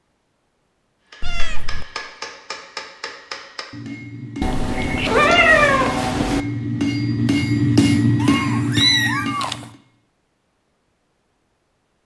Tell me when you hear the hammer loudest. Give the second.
8 s.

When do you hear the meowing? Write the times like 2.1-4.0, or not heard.
1.2-1.9, 4.4-6.4, 8.2-9.6.